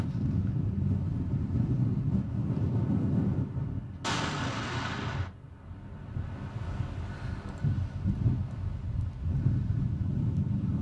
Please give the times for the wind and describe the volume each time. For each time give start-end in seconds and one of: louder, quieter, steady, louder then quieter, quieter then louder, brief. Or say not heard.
0.0-10.7 quieter then louder.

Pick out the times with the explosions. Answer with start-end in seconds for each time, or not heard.
4.0-5.3.